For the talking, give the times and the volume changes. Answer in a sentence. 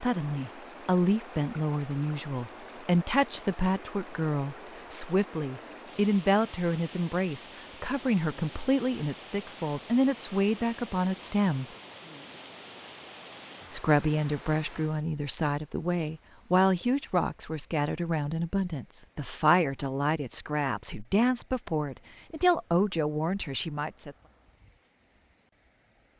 You can hear the talking from 0.0 to 11.7 s, at a steady volume; and from 13.7 to 24.1 s, at a steady volume.